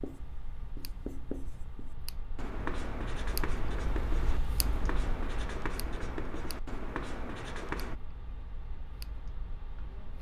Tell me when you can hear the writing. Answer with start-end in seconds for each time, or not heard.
0.0-8.0.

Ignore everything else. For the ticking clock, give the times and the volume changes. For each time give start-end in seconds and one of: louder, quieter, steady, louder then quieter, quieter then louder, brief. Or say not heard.
0.0-10.1 louder then quieter.